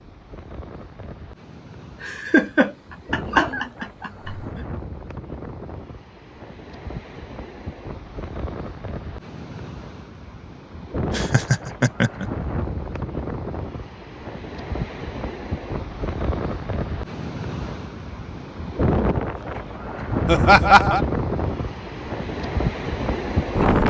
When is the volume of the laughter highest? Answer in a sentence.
The volume of the laughter peaks at 21 seconds.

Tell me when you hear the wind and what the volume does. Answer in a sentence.
You can hear the wind from 0.0 to 23.8 s, getting louder.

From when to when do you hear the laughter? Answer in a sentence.
You can hear the laughter from 2.0 to 4.6 s, from 11.1 to 12.2 s and from 20.2 to 21.0 s.